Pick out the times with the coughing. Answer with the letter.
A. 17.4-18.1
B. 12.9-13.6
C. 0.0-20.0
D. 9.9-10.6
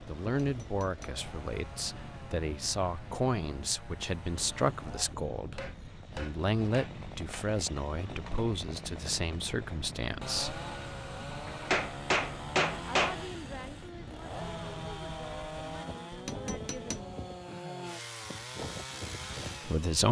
A.